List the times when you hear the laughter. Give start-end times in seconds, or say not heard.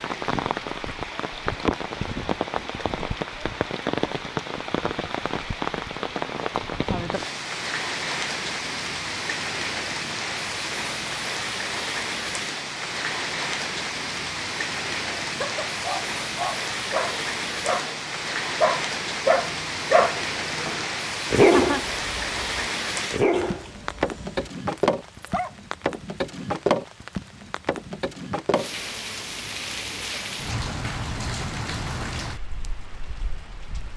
21.1-21.8.